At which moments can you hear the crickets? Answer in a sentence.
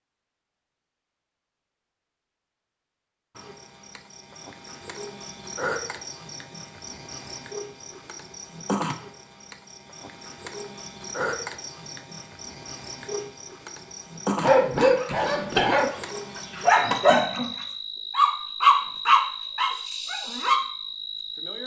The crickets can be heard from 3.4 to 21.6 s.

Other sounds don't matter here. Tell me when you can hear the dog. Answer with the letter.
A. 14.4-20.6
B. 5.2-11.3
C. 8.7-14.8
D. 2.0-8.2
A.